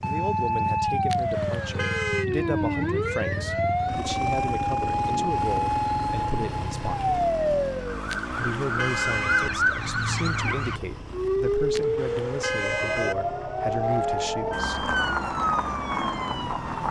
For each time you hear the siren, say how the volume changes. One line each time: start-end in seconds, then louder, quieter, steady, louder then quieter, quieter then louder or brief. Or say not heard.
0.0-16.8 steady.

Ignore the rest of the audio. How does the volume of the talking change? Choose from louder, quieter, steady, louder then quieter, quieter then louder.
steady.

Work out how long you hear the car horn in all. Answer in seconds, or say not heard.
4 s.